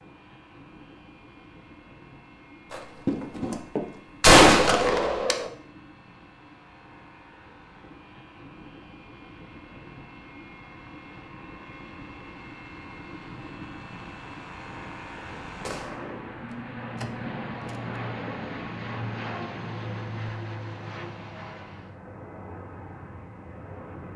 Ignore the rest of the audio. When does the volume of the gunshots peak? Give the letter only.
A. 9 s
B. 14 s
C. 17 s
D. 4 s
D.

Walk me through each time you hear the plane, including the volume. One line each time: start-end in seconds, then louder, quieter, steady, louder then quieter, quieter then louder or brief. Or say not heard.
0.0-24.1 louder.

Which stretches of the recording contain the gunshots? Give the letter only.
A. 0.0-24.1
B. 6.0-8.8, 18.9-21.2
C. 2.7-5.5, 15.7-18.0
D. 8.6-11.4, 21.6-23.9
C.